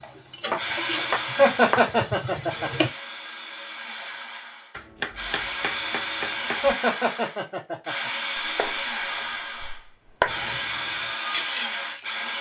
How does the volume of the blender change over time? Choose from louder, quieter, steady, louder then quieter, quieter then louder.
quieter then louder.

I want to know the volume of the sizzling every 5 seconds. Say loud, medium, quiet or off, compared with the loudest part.
loud, off, loud.